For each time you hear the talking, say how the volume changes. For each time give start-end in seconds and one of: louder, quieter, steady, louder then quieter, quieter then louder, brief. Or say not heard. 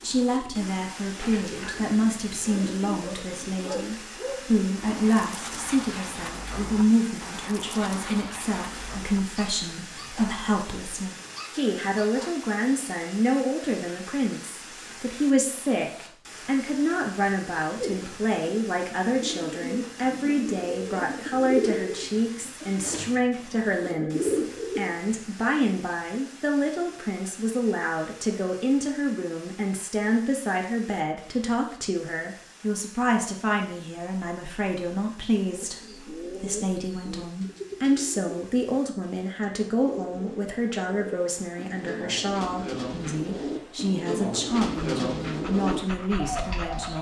0.0-46.9 steady.